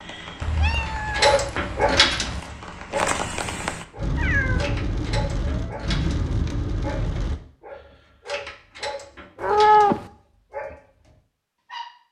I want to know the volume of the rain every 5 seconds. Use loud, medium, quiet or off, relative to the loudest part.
loud, loud, off.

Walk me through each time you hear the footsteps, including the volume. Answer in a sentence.
The footsteps can't be heard in this clip.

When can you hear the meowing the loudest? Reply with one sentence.
The loudest moment of the meowing is at 10 seconds.